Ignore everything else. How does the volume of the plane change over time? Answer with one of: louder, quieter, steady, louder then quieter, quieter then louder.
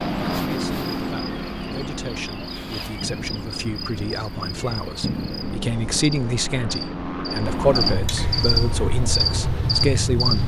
quieter then louder.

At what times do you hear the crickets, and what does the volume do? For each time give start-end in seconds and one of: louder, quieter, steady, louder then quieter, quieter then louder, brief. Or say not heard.
0.0-10.4 louder.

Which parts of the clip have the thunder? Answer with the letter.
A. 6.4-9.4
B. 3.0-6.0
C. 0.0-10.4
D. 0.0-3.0
B.